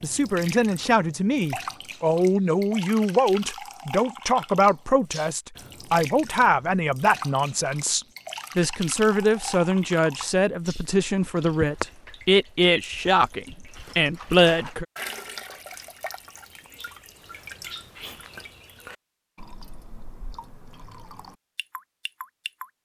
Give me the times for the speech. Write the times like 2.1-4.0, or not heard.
0.0-14.8.